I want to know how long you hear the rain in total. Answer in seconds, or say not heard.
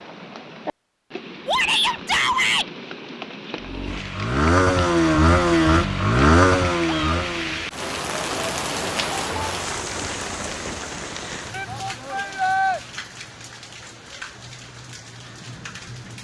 16 s.